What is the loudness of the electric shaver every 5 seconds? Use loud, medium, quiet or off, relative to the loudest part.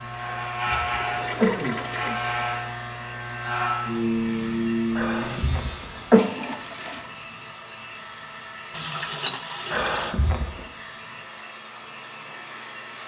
loud, medium, quiet.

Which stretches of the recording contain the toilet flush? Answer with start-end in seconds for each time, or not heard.
0.7-2.1, 6.1-7.1, 8.7-10.2.